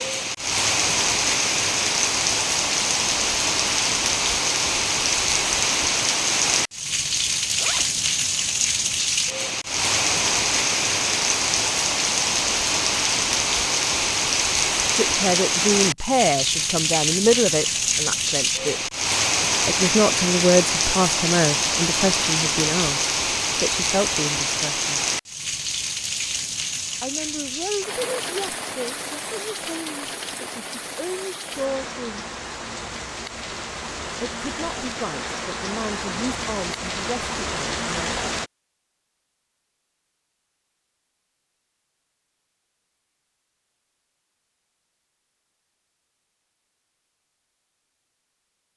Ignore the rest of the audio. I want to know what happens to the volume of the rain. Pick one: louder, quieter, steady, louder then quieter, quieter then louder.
quieter.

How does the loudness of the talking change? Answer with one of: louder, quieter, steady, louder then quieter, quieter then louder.
quieter.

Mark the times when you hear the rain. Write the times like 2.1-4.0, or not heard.
0.0-38.5.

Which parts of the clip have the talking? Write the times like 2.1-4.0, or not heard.
14.9-18.8, 19.6-25.0, 27.0-32.2, 34.2-38.1.